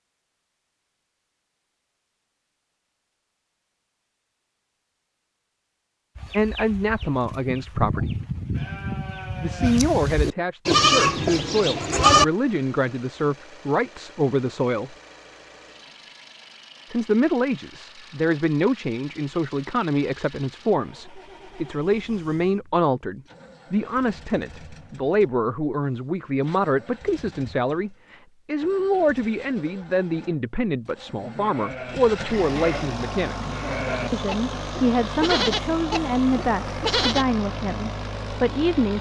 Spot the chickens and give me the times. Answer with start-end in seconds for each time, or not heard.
not heard.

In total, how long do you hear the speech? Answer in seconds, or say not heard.
29 s.